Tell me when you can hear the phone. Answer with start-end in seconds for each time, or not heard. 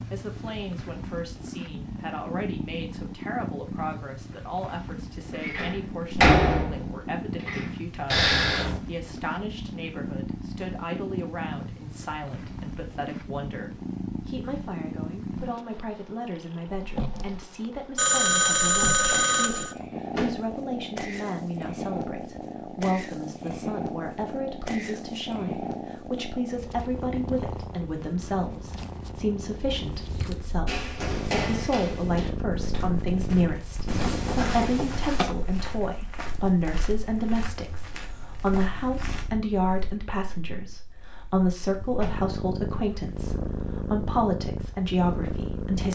8.1-8.8, 17.9-19.8, 33.9-35.4.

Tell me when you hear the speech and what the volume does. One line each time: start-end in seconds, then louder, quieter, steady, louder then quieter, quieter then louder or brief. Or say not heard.
0.1-45.9 louder.